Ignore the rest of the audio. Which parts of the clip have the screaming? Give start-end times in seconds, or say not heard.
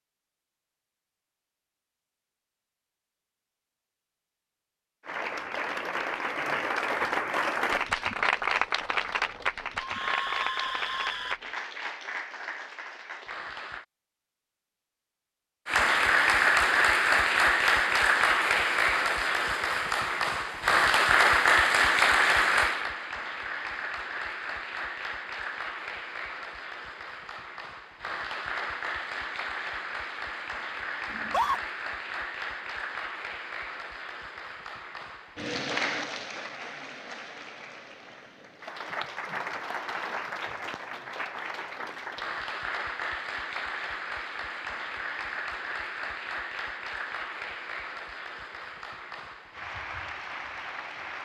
9.8-11.4, 31.1-31.6.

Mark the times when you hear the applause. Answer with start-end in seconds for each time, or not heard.
5.0-13.8, 15.7-51.2.